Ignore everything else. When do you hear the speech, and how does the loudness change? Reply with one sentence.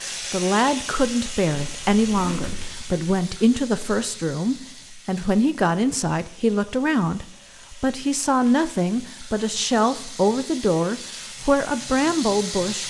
The speech can be heard from 0.0 to 12.8 s, at a steady volume.